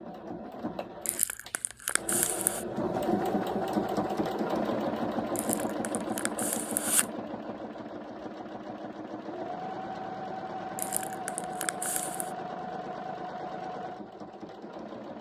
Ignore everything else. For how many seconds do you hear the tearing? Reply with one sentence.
The tearing can be heard for 5 seconds in total.